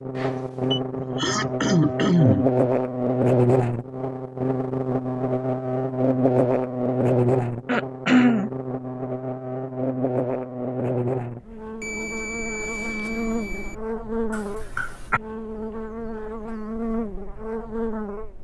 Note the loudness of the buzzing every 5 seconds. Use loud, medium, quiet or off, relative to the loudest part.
loud, loud, medium, medium.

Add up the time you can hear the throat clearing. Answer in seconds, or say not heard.
3 s.